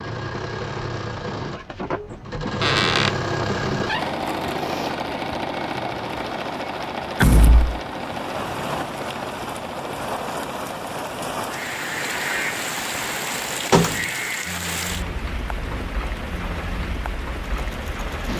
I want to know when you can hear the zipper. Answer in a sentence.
The zipper can't be heard in this clip.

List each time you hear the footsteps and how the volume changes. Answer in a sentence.
You can't hear the footsteps here.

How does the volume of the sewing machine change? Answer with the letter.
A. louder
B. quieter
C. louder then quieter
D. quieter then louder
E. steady
B.